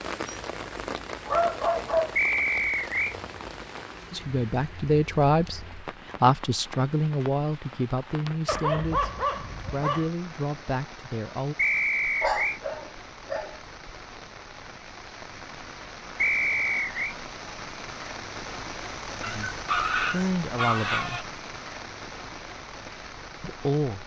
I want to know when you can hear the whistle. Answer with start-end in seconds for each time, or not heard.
2.1-3.1, 11.6-12.6, 16.1-17.1.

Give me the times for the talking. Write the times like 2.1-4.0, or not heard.
4.1-9.1, 9.7-11.6, 19.2-21.2, 23.4-24.0.